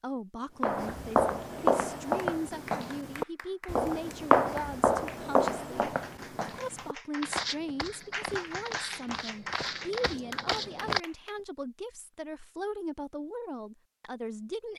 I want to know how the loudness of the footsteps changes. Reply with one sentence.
The loudness of the footsteps goes down.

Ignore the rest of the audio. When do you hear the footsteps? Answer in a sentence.
You can hear the footsteps from 0.5 to 11.0 s.